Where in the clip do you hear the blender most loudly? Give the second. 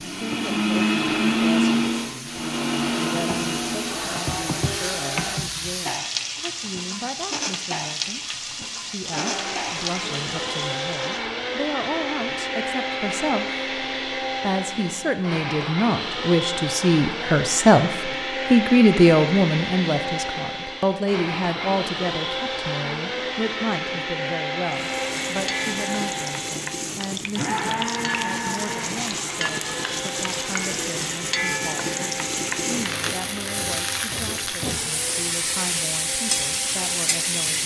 1 s.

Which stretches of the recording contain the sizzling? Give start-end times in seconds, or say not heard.
0.0-11.2, 24.6-37.6.